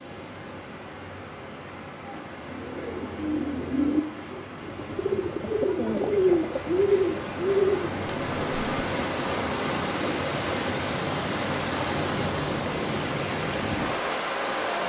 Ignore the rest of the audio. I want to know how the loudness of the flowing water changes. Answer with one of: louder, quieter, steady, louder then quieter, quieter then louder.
louder.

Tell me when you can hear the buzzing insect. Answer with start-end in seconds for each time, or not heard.
not heard.